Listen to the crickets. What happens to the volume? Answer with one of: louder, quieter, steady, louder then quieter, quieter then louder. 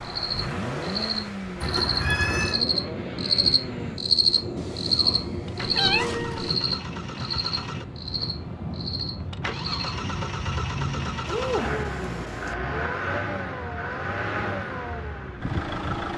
louder then quieter.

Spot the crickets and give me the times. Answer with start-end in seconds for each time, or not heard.
0.0-11.2.